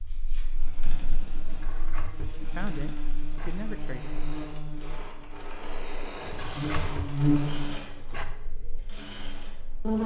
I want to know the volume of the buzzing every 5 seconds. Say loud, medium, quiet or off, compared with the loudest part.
quiet, loud.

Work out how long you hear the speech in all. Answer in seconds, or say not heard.
2 s.